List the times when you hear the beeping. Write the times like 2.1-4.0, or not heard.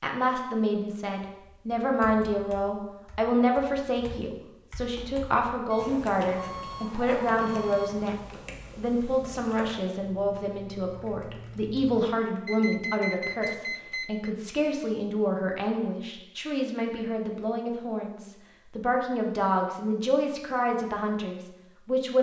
5.7-8.0, 12.4-14.3.